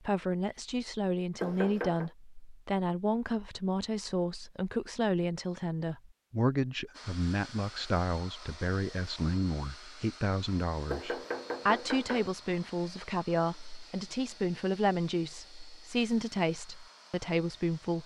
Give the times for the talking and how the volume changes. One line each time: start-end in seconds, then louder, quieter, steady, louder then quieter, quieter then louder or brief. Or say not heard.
0.0-18.0 steady.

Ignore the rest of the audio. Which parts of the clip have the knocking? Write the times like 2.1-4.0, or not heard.
1.4-2.1, 10.8-12.3.